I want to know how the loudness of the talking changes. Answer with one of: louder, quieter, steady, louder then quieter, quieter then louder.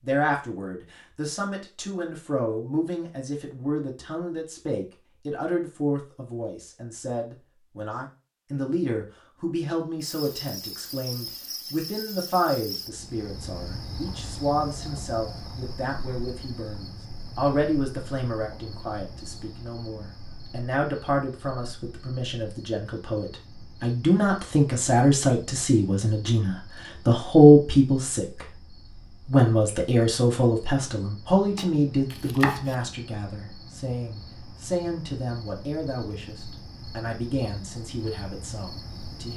louder then quieter.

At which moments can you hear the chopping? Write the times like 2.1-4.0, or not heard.
31.6-32.8.